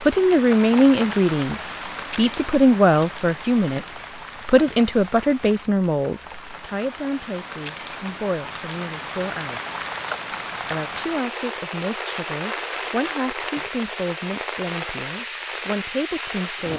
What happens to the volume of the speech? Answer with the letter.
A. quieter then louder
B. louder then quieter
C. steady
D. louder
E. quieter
E.